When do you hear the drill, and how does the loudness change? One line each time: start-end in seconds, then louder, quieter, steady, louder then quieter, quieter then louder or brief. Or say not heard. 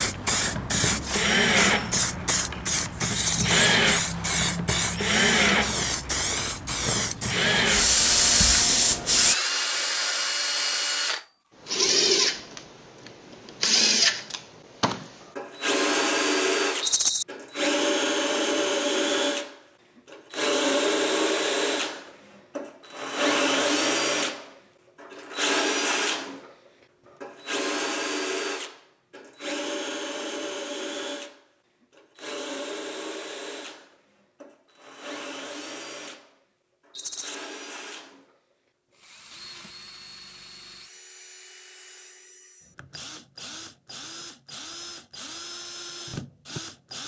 0.0-47.0 quieter.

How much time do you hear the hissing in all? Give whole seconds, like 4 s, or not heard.
9 s.